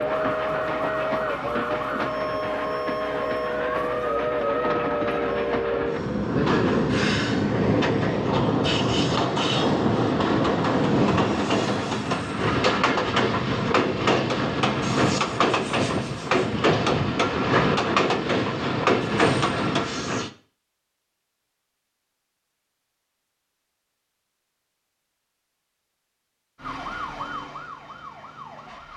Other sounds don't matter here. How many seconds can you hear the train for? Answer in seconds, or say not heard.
20 s.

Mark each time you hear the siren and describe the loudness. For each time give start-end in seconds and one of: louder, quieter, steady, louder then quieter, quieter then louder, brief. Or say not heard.
0.0-5.7 steady
26.6-28.9 brief.